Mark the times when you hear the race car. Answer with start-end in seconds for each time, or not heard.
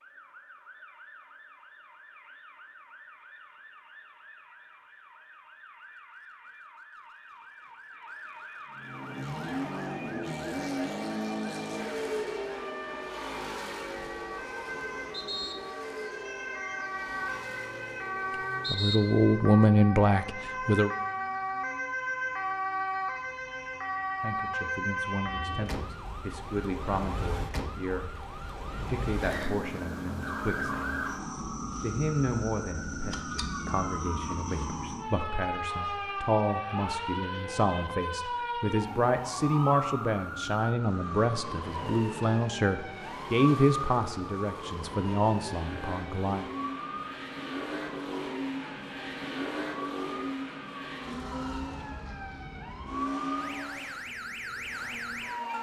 8.7-19.4, 40.7-55.5.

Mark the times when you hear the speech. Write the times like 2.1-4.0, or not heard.
18.7-20.9, 24.1-30.9, 31.6-46.5.